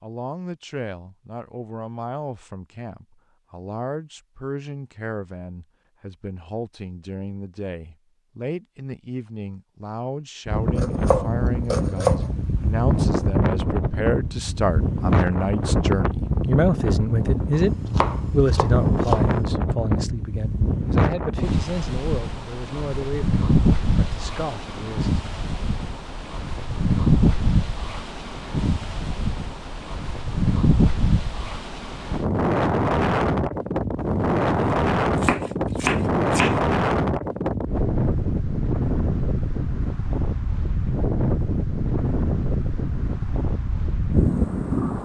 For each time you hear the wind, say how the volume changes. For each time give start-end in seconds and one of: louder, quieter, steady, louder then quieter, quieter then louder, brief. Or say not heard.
10.4-45.0 steady.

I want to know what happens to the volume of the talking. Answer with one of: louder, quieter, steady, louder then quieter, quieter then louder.
louder then quieter.